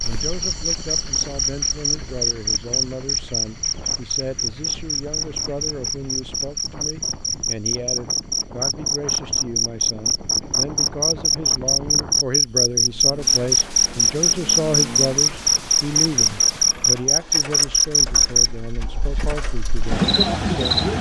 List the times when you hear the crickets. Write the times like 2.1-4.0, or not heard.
0.0-20.9.